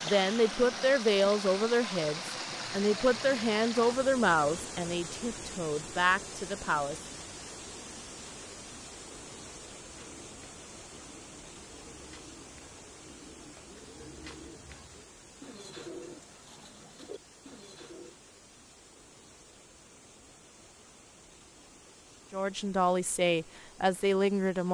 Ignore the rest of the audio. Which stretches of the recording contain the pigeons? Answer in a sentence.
You can hear the pigeons from 9.9 to 18.1 s.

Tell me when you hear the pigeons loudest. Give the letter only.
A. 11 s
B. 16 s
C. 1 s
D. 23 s
B.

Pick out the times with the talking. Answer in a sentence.
You can hear the talking from 0.0 to 7.0 s and from 22.3 to 24.6 s.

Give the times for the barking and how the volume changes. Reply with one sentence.
You can't hear the barking here.